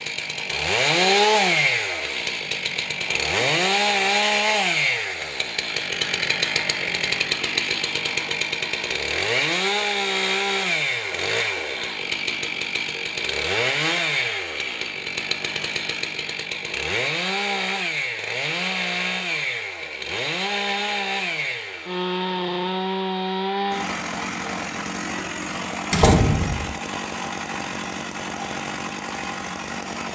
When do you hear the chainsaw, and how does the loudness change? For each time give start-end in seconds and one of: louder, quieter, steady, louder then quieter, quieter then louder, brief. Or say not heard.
0.0-30.0 quieter.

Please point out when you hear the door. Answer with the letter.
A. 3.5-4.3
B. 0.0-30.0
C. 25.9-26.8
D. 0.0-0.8
C.